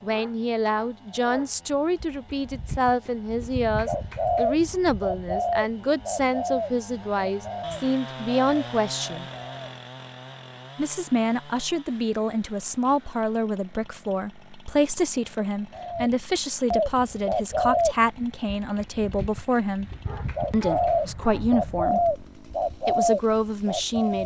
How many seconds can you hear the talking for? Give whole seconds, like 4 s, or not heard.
22 s.